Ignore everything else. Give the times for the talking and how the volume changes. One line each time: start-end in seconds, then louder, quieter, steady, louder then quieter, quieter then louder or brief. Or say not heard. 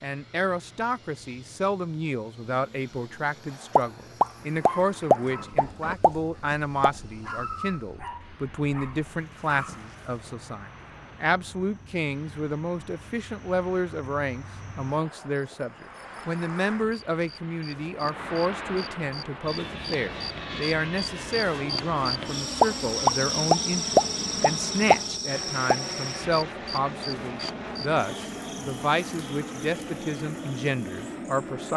0.0-31.7 steady.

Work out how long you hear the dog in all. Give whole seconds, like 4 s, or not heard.
5 s.